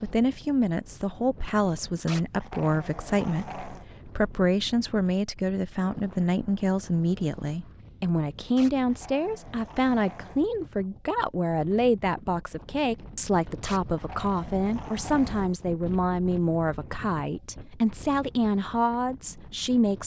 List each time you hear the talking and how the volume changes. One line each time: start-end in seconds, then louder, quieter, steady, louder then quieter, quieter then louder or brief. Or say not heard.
0.0-20.0 steady.